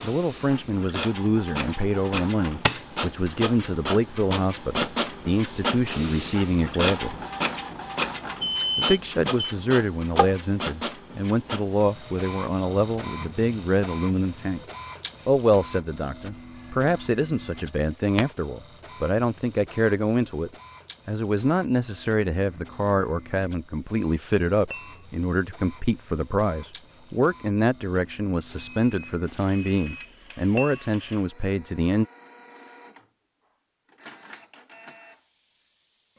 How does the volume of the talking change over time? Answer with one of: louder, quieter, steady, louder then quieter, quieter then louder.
steady.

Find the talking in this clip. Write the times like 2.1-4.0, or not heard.
0.0-7.2, 8.8-14.6, 15.2-32.0.